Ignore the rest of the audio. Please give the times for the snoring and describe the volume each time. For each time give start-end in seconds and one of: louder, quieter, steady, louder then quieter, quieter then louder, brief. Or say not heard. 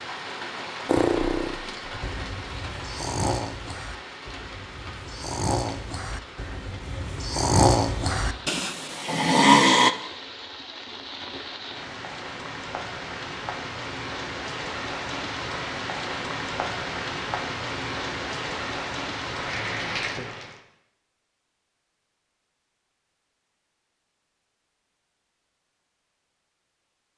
0.8-9.9 louder.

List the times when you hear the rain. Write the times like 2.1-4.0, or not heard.
0.0-20.6.